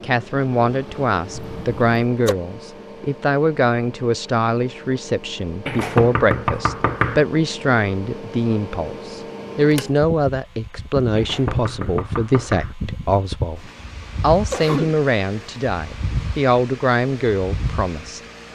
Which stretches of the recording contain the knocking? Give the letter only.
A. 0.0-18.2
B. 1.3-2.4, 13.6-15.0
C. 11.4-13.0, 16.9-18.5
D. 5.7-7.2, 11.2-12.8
D.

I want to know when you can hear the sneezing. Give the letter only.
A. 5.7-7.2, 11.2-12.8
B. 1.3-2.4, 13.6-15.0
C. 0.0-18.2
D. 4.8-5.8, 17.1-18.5
B.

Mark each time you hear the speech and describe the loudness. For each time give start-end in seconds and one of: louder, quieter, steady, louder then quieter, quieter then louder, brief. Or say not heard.
0.0-18.2 steady.